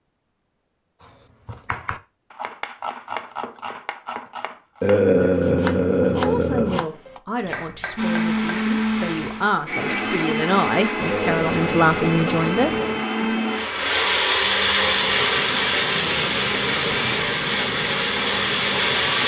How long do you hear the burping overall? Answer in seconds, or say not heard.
4 s.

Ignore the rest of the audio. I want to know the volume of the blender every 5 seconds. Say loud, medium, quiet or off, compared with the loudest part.
off, loud, loud, loud.